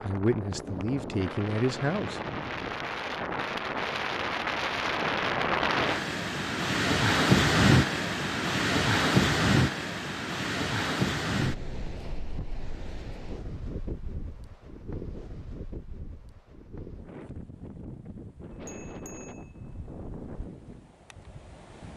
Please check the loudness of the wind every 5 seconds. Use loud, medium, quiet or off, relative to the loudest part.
medium, loud, medium, quiet, quiet.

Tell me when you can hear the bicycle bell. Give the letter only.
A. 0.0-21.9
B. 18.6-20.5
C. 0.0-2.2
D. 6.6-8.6
B.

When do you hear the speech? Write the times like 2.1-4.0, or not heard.
0.0-2.2.